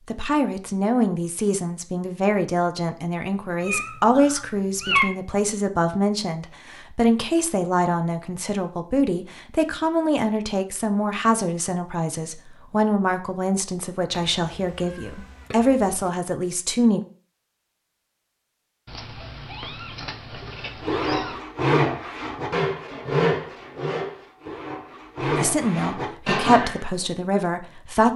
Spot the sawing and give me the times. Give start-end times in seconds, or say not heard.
20.4-26.9.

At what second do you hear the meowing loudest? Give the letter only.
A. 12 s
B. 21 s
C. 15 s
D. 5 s
D.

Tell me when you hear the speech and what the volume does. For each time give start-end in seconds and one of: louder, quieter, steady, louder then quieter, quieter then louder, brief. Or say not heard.
0.1-17.0 steady
25.2-28.1 brief.